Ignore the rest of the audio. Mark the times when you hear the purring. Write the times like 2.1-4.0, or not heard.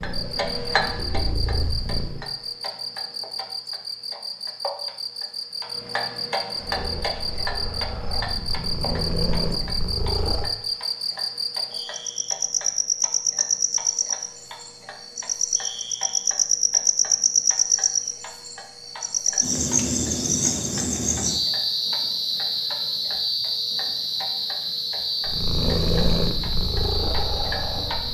0.0-2.2, 6.5-10.6, 25.2-28.0.